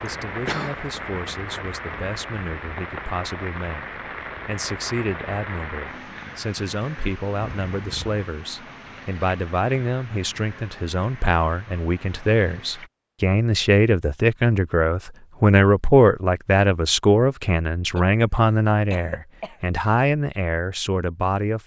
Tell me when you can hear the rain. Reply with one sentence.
You can hear the rain from 0.0 to 12.9 s.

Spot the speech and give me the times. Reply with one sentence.
The speech can be heard from 0.0 to 21.6 s.